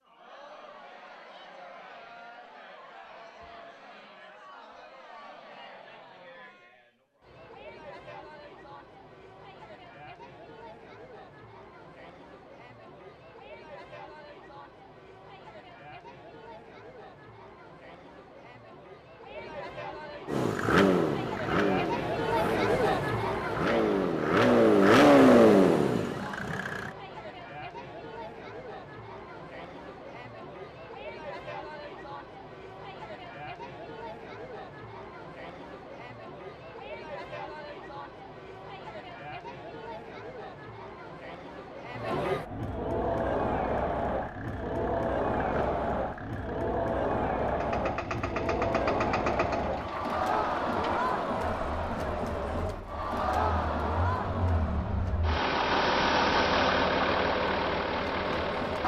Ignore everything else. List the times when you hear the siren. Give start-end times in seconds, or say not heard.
not heard.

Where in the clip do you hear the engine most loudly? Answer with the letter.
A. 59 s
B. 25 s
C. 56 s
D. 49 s
B.